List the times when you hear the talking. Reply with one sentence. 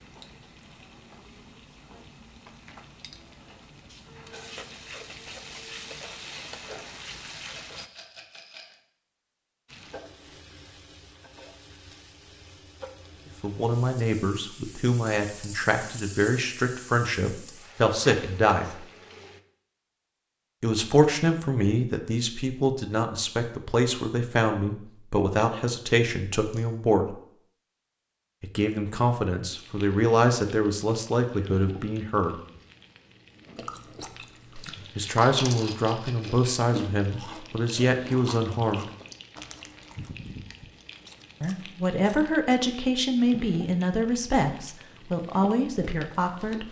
You can hear the talking from 13.4 to 18.9 s, from 20.6 to 27.2 s, from 28.4 to 32.4 s, from 35.0 to 38.9 s and from 41.4 to 46.6 s.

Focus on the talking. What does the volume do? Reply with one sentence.
The volume of the talking stays about the same.